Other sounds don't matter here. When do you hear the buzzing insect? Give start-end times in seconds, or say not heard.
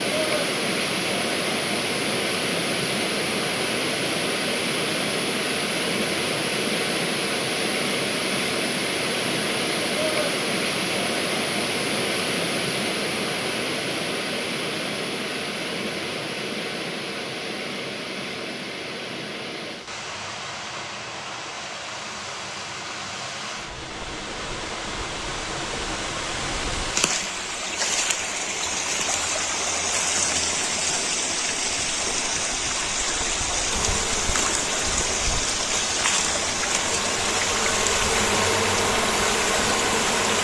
33.6-40.3.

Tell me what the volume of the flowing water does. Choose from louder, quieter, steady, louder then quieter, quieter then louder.
quieter then louder.